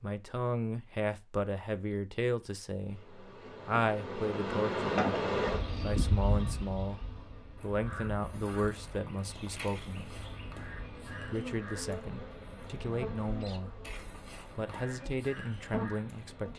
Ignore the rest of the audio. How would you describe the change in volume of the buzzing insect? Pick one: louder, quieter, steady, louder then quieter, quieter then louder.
quieter then louder.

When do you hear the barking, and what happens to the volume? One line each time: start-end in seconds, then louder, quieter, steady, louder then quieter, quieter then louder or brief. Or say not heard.
not heard.